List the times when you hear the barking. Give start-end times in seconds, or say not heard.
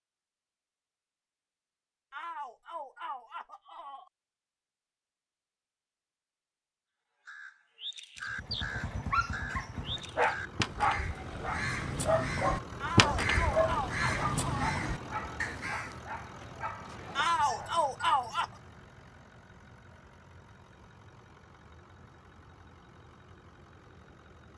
8.3-17.8.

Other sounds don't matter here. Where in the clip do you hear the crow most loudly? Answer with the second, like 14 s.
13 s.